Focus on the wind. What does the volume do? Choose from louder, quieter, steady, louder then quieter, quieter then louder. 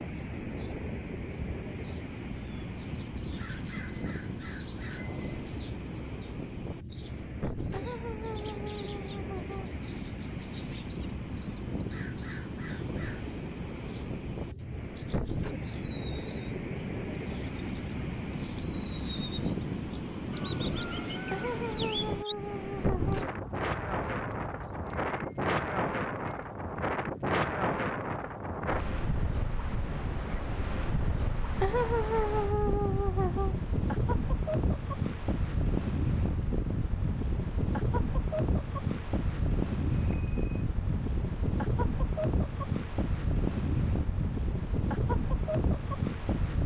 louder.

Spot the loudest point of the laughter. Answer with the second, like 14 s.
32 s.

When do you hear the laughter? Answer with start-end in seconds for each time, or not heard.
7.7-9.7, 21.3-23.3, 31.6-33.5.